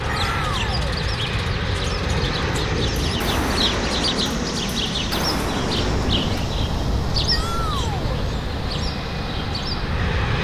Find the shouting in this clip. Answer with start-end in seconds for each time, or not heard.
0.1-0.8, 7.3-8.2.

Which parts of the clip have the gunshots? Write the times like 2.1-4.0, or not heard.
2.0-6.5.